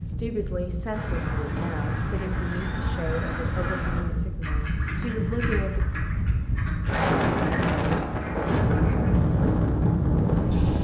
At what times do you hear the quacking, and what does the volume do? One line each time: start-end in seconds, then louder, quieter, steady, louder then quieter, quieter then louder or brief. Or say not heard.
0.9-9.1 quieter.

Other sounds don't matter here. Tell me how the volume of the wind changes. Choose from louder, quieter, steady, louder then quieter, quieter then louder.
louder.